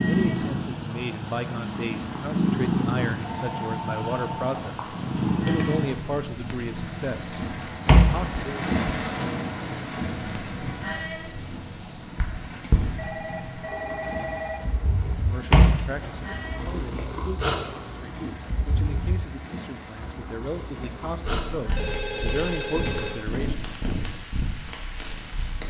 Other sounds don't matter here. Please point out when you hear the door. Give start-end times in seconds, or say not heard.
7.8-8.3, 15.5-16.9.